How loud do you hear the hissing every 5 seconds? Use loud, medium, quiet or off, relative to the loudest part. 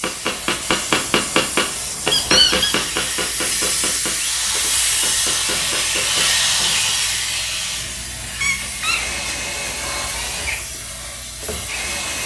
loud, loud, medium.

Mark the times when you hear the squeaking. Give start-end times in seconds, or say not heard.
2.1-2.8, 8.3-9.2.